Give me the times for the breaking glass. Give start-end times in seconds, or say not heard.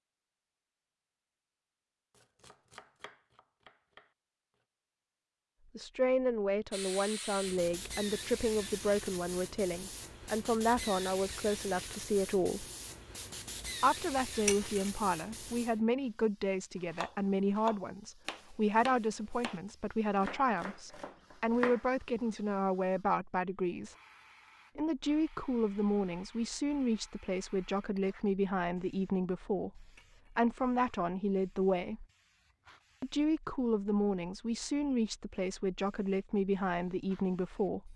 14.4-14.9, 29.9-30.4.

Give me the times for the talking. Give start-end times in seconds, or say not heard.
5.8-12.7, 13.8-23.9, 24.8-32.0, 33.0-37.9.